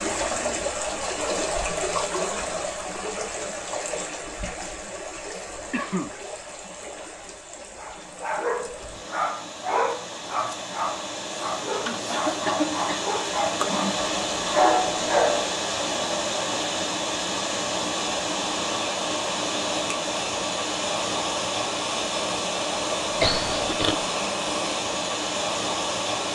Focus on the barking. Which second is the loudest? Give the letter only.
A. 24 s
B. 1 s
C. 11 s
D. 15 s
D.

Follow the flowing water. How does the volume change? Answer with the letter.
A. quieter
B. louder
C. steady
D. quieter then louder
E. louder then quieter
D.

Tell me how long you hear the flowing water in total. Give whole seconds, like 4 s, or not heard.
26 s.